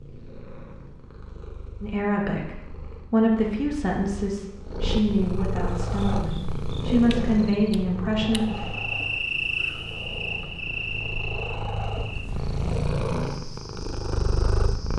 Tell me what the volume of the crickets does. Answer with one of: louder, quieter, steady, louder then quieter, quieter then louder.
louder then quieter.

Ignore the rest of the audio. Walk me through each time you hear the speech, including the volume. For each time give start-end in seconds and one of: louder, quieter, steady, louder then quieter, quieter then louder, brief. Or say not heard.
1.8-8.7 steady.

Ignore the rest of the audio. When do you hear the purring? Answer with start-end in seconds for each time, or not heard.
0.0-14.9.